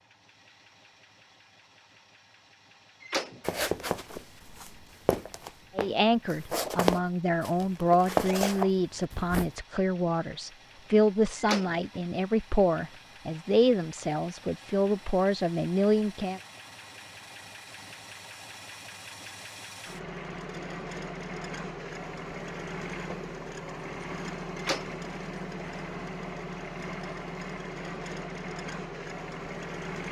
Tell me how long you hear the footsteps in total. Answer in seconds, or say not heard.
6 s.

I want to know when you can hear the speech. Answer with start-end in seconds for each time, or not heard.
5.8-16.4.